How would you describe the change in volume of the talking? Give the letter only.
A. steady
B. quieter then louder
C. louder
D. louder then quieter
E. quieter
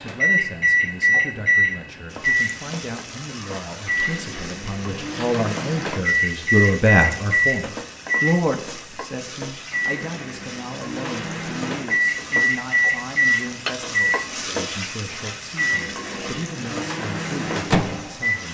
D.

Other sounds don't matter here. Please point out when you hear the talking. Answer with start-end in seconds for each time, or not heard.
0.0-18.5.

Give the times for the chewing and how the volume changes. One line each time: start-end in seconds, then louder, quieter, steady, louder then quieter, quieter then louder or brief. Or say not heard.
not heard.